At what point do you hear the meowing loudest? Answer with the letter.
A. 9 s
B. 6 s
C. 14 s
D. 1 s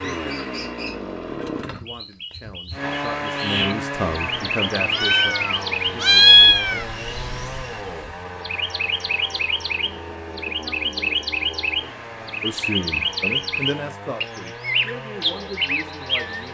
B.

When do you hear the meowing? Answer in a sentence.
You can hear the meowing from 4.9 to 6.8 s.